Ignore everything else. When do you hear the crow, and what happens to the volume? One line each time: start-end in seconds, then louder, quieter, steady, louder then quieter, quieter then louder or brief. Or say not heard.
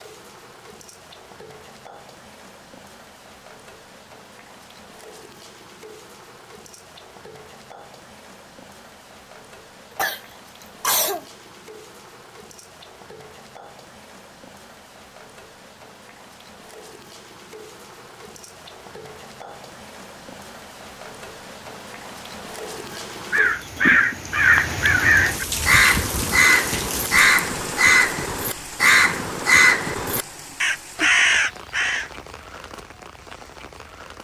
23.3-32.0 steady.